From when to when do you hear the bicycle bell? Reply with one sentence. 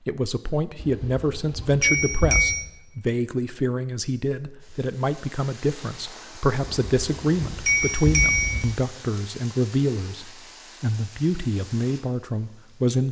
The bicycle bell can be heard from 0.8 to 2.5 s and from 6.8 to 8.7 s.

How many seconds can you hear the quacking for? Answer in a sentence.
You can't hear the quacking here.